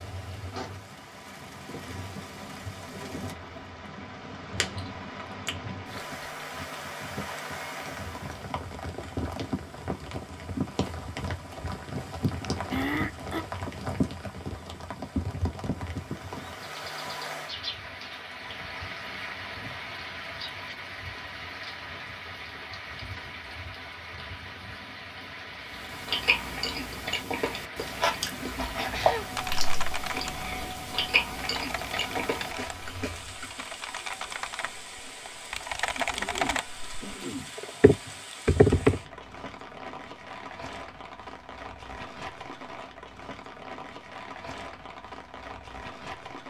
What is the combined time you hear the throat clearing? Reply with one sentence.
The throat clearing can be heard for 3 seconds in total.